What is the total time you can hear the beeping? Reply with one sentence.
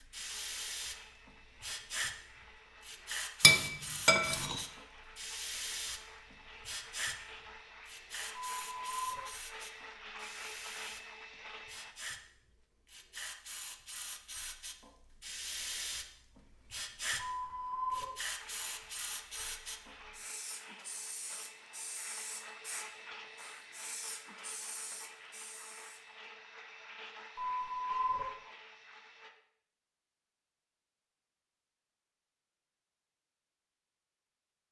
You can hear the beeping for 3 seconds altogether.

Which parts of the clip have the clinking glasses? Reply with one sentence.
You can hear the clinking glasses from 3.4 to 4.6 s.